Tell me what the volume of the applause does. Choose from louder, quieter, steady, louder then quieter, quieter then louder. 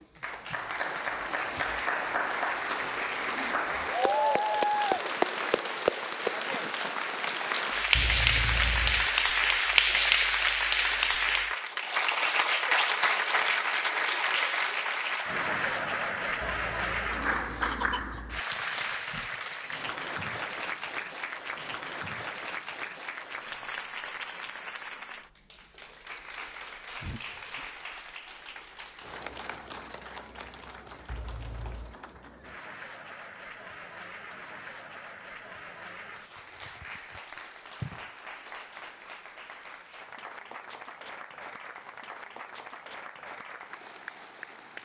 quieter.